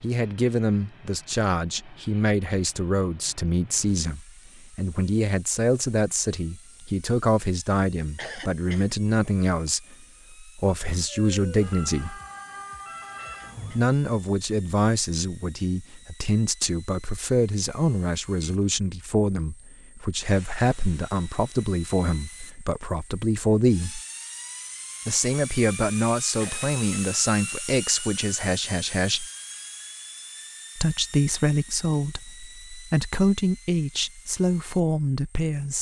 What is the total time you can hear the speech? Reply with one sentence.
The speech can be heard for 32 seconds in total.